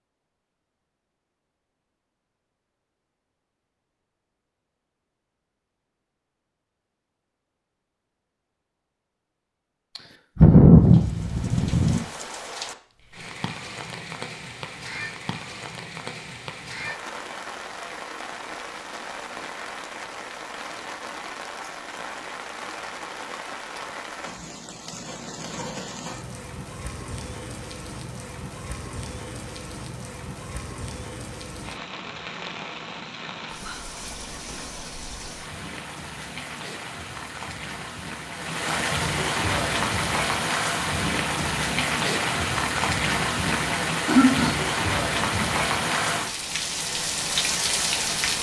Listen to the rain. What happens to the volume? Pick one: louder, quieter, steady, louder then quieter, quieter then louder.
louder.